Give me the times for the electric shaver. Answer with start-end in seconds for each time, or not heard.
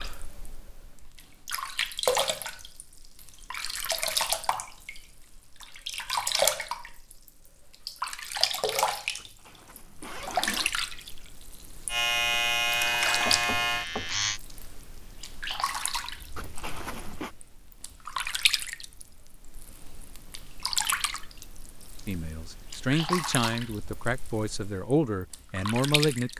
11.8-14.4.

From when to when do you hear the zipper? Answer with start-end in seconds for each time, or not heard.
9.2-10.7, 16.4-17.4.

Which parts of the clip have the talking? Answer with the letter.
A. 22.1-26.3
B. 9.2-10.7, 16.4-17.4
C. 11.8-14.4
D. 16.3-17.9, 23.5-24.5
A.